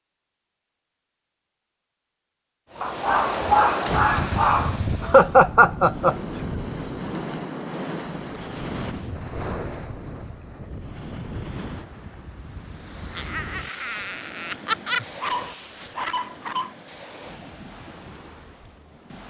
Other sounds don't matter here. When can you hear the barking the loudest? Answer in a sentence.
The loudest moment of the barking is at 4 seconds.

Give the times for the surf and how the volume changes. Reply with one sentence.
You can hear the surf from 2.7 to 19.2 s, getting quieter.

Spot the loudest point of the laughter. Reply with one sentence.
The loudest moment of the laughter is at 5 seconds.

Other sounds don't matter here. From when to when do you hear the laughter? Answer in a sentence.
The laughter can be heard from 5.0 to 6.2 s and from 13.2 to 15.1 s.